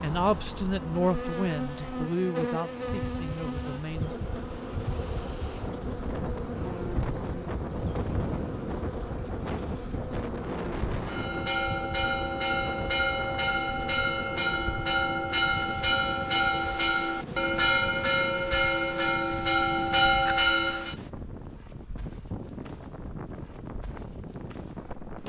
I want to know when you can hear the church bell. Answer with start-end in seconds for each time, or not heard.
11.1-20.9.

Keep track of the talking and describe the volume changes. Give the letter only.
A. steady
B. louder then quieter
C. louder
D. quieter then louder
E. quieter
E.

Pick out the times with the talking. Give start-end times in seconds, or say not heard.
0.0-4.2.